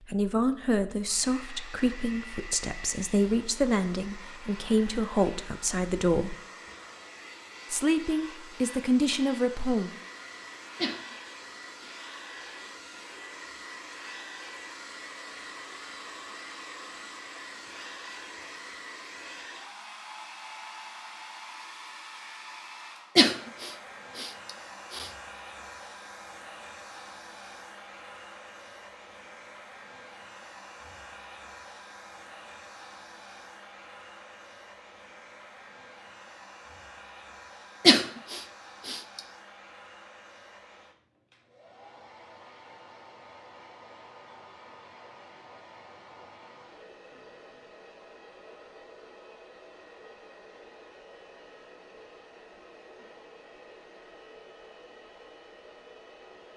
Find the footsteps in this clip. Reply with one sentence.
The footsteps can't be heard in this clip.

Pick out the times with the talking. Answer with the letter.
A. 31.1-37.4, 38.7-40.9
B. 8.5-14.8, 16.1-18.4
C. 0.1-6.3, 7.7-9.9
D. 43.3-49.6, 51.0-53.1
C.